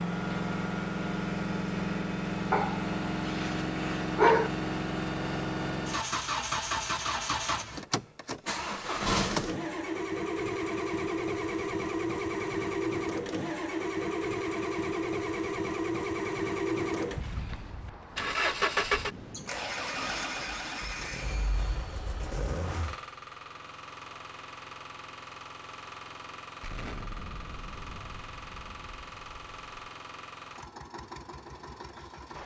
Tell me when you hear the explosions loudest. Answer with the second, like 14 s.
27 s.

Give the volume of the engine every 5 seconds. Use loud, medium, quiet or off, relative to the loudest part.
loud, loud, loud, loud, medium, quiet, quiet.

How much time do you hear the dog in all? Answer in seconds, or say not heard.
2 s.